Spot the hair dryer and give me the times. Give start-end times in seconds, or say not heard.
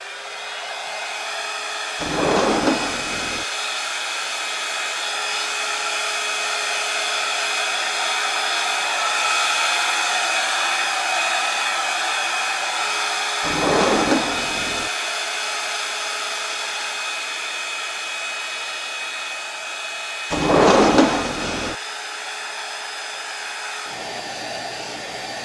0.0-25.3.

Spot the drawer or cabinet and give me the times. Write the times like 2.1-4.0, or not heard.
2.0-3.5, 13.4-14.9, 20.3-21.8.